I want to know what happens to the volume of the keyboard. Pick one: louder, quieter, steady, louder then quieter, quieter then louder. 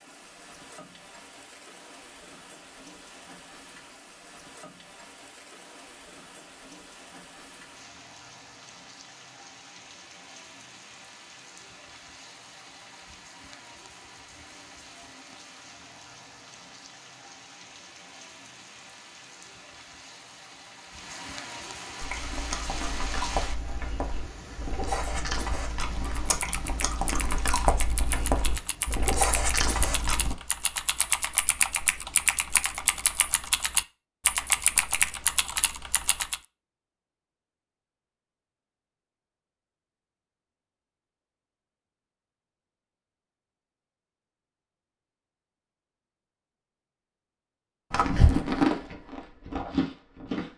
louder.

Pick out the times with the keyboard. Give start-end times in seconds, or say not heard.
26.1-36.4.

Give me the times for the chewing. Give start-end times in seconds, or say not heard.
21.9-30.4, 47.9-50.5.